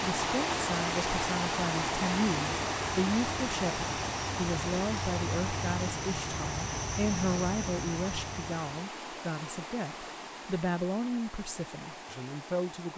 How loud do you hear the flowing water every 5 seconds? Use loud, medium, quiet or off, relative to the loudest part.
loud, medium, quiet.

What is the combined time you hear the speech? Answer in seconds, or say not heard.
13 s.